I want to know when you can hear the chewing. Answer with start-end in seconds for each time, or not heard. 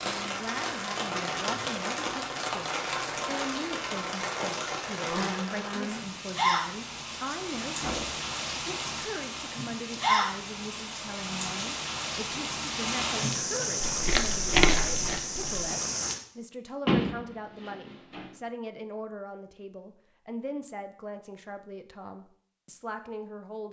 13.8-15.7.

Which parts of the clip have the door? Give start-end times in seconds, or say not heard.
7.8-8.3, 16.9-18.2.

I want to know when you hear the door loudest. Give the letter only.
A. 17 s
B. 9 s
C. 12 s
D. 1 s
A.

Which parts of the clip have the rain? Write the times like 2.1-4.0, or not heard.
0.0-16.1.